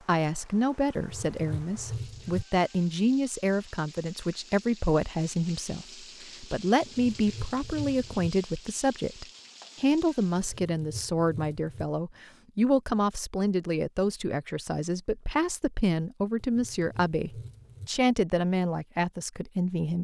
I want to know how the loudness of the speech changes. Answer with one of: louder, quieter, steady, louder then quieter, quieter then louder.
steady.